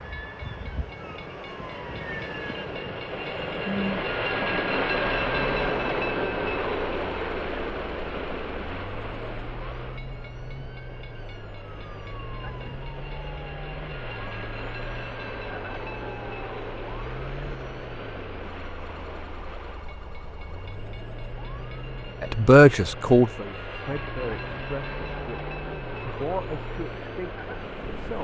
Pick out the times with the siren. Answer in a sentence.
You can hear the siren from 0.0 to 28.2 s.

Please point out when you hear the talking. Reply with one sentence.
The talking can be heard from 22.2 to 28.2 s.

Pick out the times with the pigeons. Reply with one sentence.
The pigeons can't be heard in this clip.